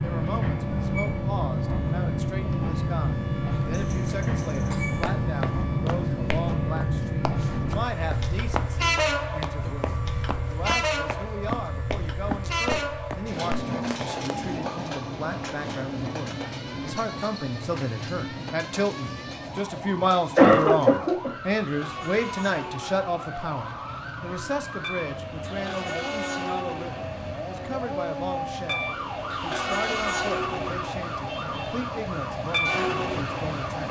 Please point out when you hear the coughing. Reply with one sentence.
You can hear the coughing from 3.7 to 5.2 s and from 20.4 to 21.3 s.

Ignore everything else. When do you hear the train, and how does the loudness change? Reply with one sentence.
The train can be heard from 0.0 to 33.8 s, getting quieter then louder.